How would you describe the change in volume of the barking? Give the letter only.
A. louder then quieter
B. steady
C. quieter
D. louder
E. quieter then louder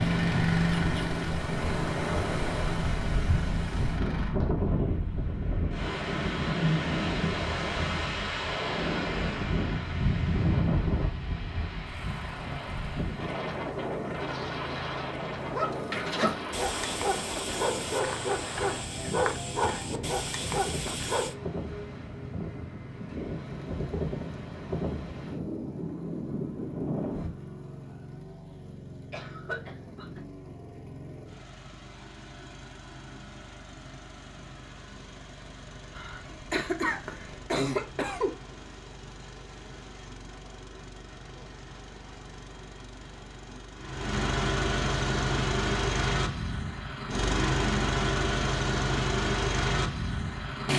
B.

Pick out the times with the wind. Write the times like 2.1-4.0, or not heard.
0.0-27.3.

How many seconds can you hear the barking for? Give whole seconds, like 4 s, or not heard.
6 s.